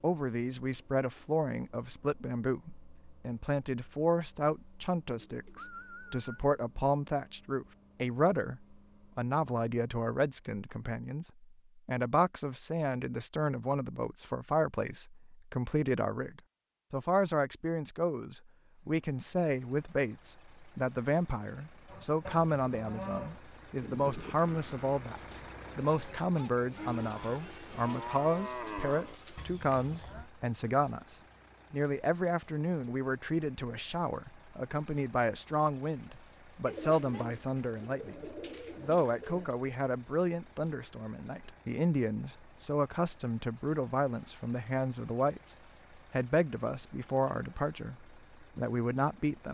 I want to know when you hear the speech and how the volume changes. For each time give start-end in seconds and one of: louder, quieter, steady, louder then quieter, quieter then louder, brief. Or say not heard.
0.0-49.4 steady.